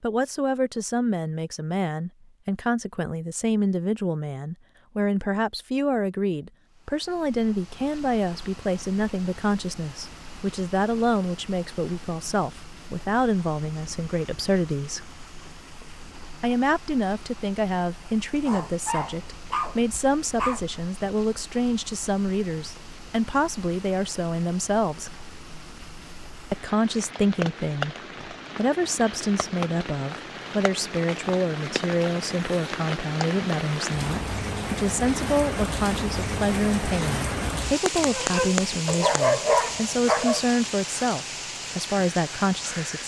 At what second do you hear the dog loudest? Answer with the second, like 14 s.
39 s.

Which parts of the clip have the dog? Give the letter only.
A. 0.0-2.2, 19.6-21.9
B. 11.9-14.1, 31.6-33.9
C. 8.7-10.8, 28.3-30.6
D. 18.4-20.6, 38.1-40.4
D.